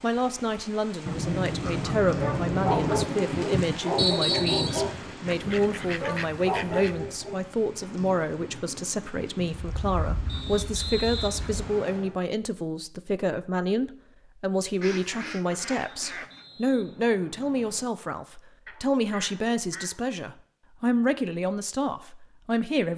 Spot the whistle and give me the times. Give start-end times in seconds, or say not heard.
4.0-4.8, 10.2-12.2, 16.1-17.9.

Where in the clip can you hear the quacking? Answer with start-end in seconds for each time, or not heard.
1.1-3.0, 4.7-7.0, 9.5-11.7, 14.8-16.4, 18.6-20.0.